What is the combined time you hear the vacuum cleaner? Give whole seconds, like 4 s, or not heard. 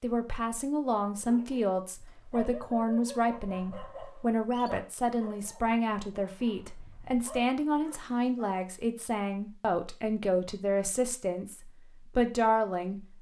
not heard.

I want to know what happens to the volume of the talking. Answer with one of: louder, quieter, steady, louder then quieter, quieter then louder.
steady.